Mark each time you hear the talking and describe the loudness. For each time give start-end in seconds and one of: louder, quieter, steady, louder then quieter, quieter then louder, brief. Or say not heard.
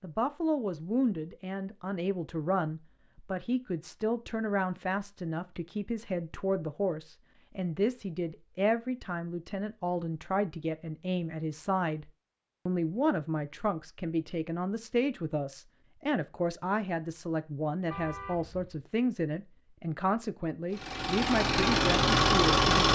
0.0-12.1 steady
12.7-22.7 steady.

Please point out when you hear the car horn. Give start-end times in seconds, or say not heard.
17.9-18.8.